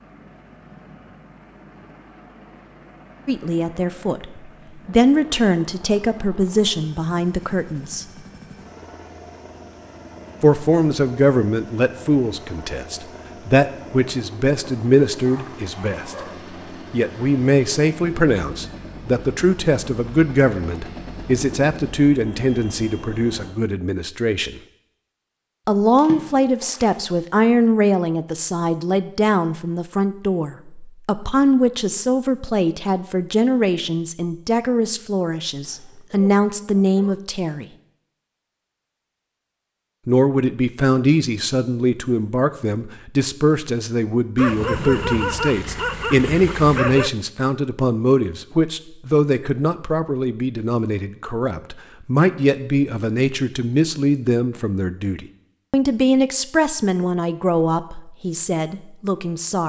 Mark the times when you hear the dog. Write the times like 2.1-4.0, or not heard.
14.6-16.4, 35.6-37.2, 44.4-47.1.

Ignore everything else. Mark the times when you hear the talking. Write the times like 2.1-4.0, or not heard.
3.2-8.1, 10.4-16.1, 16.9-24.6, 25.6-37.6, 40.0-59.6.